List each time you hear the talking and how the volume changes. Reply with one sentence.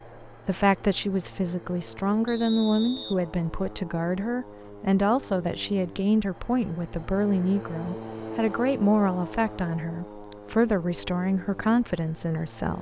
You can hear the talking from 0.2 to 12.7 s, at a steady volume.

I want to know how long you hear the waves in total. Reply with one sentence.
You can't hear the waves here.